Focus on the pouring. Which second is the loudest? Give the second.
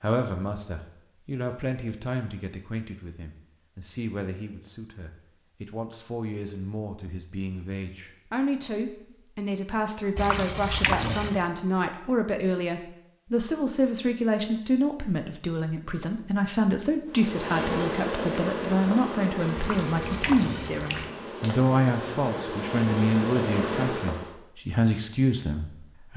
11 s.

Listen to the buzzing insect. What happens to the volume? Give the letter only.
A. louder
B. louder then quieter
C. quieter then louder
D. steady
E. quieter
C.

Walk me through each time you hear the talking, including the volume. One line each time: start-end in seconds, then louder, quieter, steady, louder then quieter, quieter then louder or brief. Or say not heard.
0.0-26.1 louder.